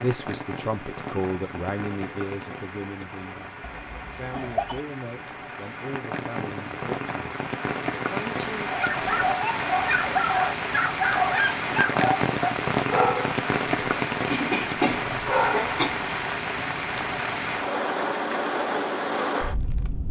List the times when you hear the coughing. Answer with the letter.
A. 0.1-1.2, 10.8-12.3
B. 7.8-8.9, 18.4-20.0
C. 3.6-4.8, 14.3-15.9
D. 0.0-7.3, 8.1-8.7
C.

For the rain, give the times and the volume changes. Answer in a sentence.
The rain can be heard from 0.0 to 20.0 s, getting louder.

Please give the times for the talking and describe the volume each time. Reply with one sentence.
The talking can be heard from 0.0 to 7.3 s, getting quieter; and briefly from 8.1 to 8.7 s.